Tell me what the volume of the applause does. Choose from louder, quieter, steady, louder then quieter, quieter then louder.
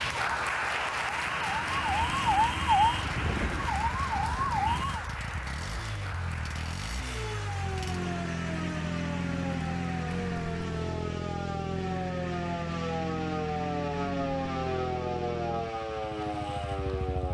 quieter.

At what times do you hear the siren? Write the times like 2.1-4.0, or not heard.
0.0-5.0, 7.0-17.2.